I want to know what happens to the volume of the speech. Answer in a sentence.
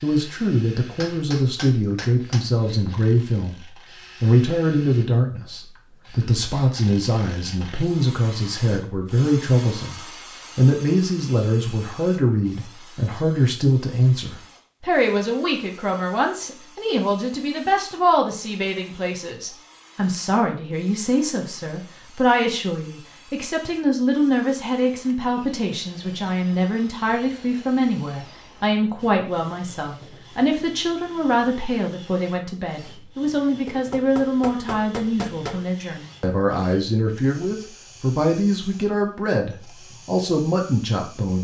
The volume of the speech stays about the same.